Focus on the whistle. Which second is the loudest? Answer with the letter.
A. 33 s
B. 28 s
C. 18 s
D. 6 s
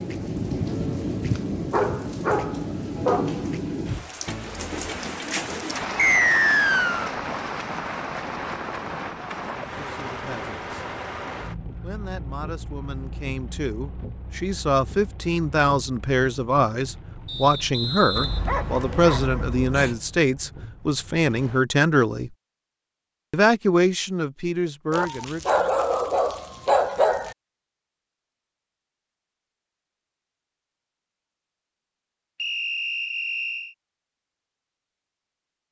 D.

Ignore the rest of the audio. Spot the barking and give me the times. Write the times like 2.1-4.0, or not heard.
1.7-3.5, 18.1-20.0, 24.9-27.4.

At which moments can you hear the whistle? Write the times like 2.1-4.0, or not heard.
6.0-7.1, 17.2-19.2, 32.4-33.8.